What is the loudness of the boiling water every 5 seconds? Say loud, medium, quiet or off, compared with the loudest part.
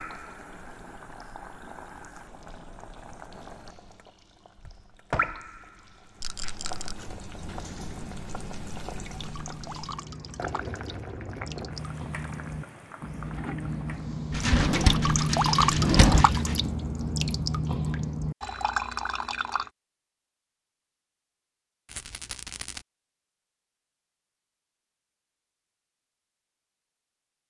medium, loud, loud, off, off, off.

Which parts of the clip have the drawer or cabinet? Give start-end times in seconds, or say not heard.
14.3-16.2.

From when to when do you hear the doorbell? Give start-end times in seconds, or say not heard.
not heard.